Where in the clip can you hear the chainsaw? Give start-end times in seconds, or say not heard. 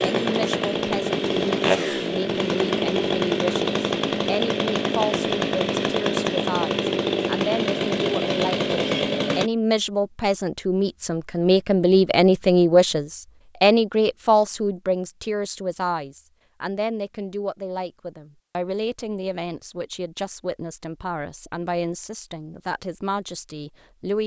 0.0-9.5.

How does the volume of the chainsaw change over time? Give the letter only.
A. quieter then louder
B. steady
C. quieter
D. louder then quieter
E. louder
B.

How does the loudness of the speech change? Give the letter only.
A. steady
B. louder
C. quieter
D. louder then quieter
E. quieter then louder
D.